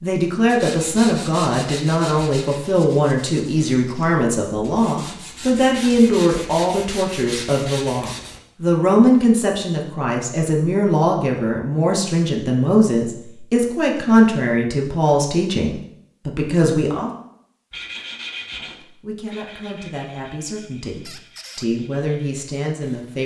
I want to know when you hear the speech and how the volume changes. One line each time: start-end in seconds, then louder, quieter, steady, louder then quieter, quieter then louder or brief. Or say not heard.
0.0-17.1 steady
18.6-23.2 louder.